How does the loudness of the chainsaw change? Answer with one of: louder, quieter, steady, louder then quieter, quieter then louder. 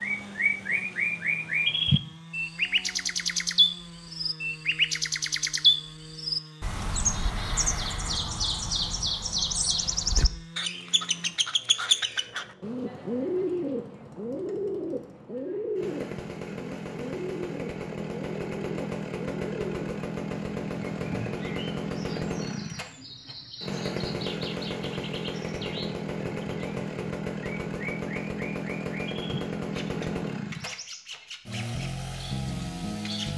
louder.